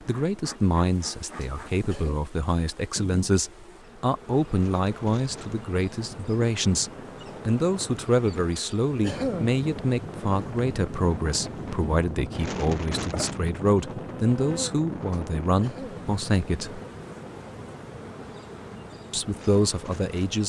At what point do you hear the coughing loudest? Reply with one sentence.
The volume of the coughing peaks at 9 seconds.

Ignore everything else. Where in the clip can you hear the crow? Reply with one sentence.
You can't hear the crow here.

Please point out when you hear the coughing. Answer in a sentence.
The coughing can be heard from 1.4 to 2.2 s, from 8.6 to 9.5 s and from 15.1 to 16.1 s.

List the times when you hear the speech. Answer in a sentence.
You can hear the speech from 0.0 to 16.8 s and from 19.1 to 20.4 s.